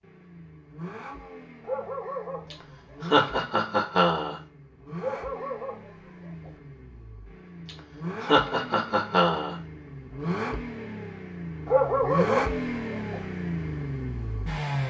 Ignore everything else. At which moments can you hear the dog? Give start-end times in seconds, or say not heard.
1.6-3.1, 5.0-6.5, 11.7-13.2.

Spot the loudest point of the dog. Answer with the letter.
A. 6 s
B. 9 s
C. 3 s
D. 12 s
D.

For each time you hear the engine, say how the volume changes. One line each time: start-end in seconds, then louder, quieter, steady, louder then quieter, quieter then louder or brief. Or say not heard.
0.0-14.8 louder.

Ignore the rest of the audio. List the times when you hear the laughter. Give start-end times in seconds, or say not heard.
2.5-4.4, 7.7-9.6.